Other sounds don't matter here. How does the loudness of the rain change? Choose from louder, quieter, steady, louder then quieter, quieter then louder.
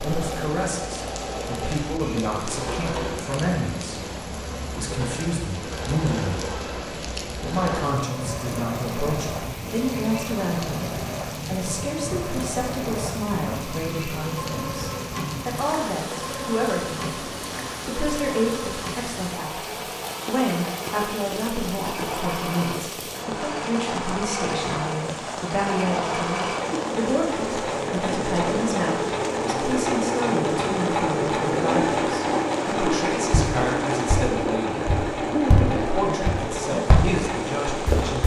steady.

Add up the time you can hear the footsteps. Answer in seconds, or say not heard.
5 s.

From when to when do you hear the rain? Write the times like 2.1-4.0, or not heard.
0.0-38.2.